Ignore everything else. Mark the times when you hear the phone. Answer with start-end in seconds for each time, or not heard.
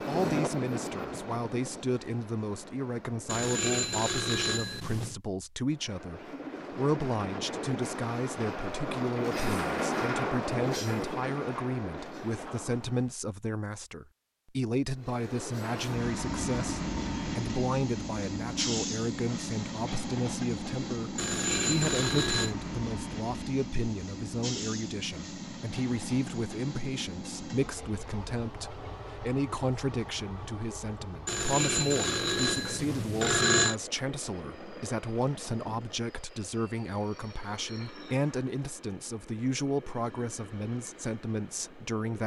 3.2-5.2, 21.1-22.6, 31.2-33.8.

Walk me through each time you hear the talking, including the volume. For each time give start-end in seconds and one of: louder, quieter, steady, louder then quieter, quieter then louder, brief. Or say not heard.
0.1-42.2 steady.